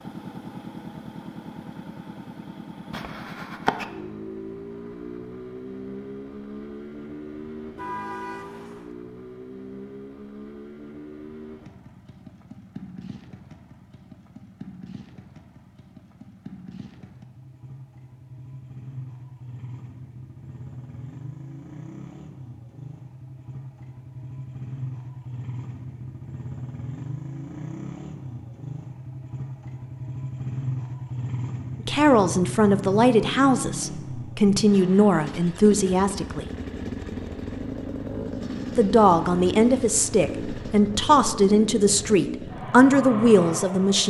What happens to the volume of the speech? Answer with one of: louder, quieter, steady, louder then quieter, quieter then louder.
steady.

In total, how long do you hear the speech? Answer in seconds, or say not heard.
10 s.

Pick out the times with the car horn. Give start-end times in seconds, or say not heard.
7.8-8.9.